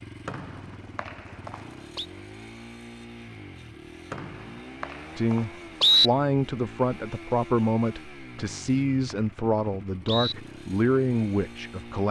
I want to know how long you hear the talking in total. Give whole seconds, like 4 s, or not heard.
7 s.